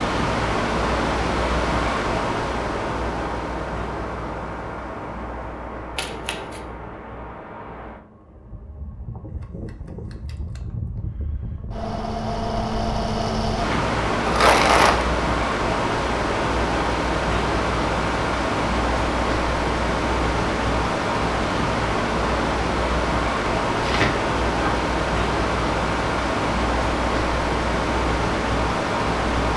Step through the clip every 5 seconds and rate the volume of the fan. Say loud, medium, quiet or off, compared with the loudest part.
loud, quiet, loud, loud, loud, loud.